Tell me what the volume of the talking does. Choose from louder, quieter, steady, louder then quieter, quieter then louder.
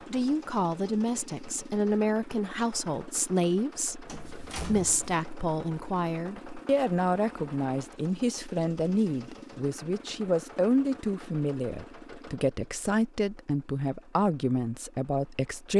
steady.